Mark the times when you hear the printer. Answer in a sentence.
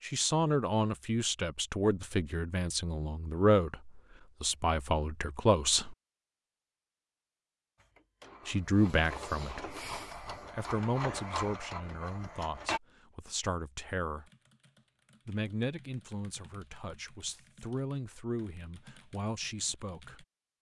You can hear the printer from 7.8 to 12.8 s.